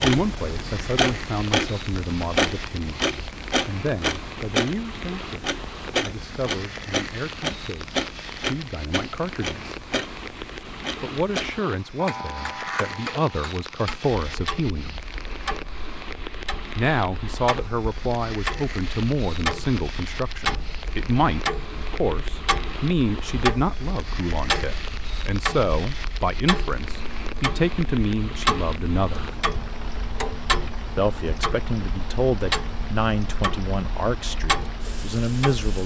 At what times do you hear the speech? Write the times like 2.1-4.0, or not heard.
0.0-9.8, 11.0-15.0, 16.8-29.3, 30.9-35.8.